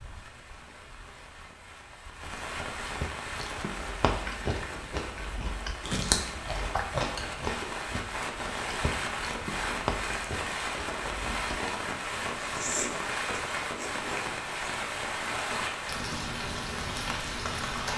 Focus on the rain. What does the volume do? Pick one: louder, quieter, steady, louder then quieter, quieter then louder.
louder.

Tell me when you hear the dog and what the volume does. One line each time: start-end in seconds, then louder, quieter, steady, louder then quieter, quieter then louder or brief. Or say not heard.
not heard.